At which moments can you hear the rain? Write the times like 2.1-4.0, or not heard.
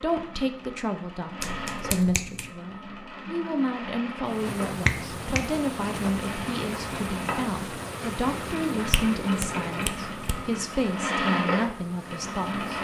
4.2-12.7.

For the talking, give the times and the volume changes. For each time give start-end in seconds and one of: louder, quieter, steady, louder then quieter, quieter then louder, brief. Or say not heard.
0.0-12.7 steady.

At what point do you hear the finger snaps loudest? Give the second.
5 s.